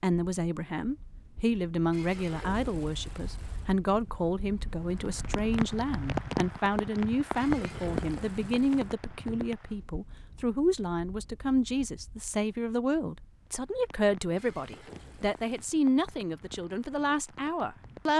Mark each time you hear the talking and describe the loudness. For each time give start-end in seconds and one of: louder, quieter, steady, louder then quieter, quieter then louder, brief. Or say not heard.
0.0-18.1 steady.